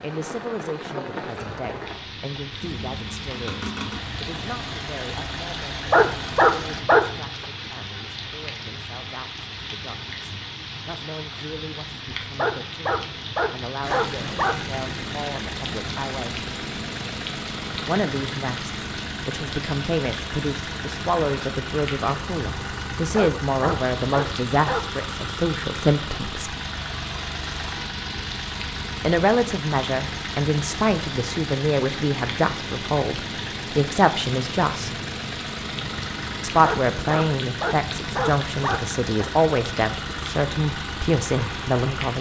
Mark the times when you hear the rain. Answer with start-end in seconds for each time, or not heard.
0.0-42.1.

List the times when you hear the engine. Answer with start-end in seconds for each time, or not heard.
2.6-6.8, 13.8-42.1.